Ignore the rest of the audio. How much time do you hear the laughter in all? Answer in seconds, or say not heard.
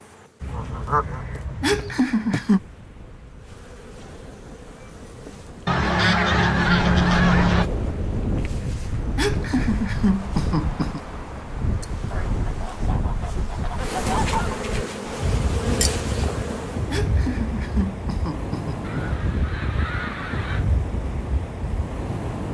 5 s.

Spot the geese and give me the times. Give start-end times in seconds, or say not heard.
0.4-2.0, 5.7-7.7, 12.1-14.6, 18.8-20.6.